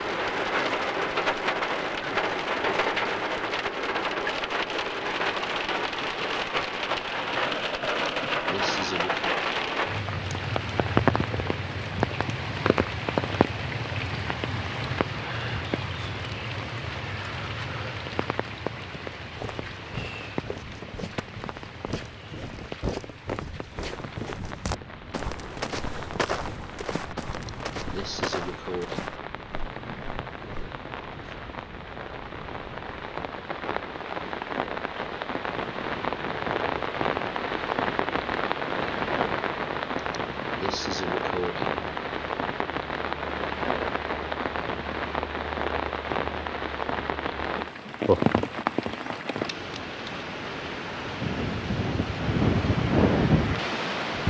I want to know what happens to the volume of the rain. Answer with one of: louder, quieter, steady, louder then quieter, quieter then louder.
quieter then louder.